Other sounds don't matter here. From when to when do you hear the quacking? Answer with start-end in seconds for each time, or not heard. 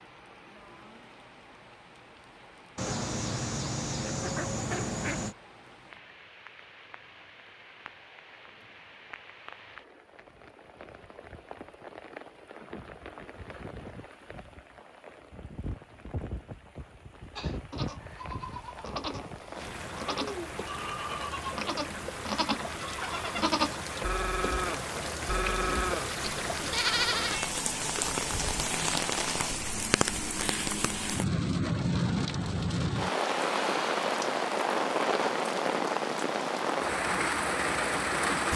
2.8-5.3.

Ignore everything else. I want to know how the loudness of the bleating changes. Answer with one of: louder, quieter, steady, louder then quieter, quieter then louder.
louder.